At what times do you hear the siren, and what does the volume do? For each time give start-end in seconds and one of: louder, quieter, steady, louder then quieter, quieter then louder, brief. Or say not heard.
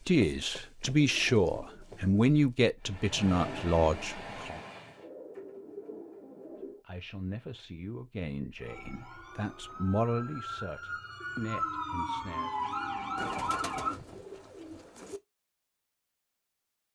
8.6-13.9 louder.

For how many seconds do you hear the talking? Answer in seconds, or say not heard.
10 s.